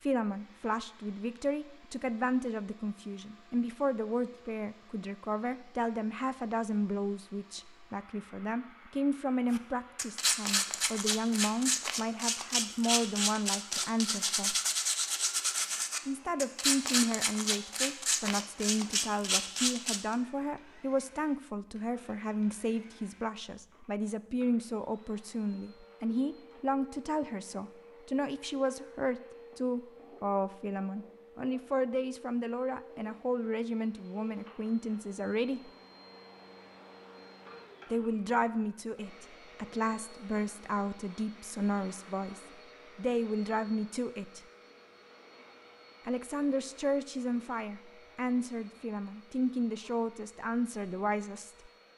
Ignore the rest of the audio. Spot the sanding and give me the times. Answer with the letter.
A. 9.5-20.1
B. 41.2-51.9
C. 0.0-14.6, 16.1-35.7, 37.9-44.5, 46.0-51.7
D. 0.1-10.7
A.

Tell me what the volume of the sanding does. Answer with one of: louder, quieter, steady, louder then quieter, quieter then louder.
steady.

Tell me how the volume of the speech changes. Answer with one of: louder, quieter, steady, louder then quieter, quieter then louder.
steady.